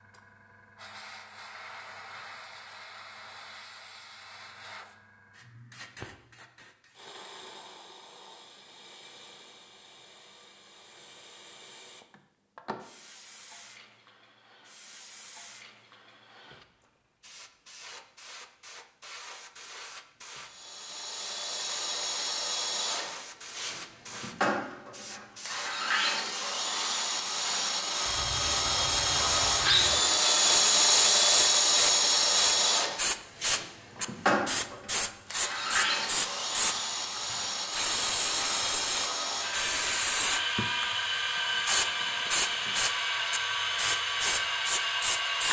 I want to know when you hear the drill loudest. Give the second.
31 s.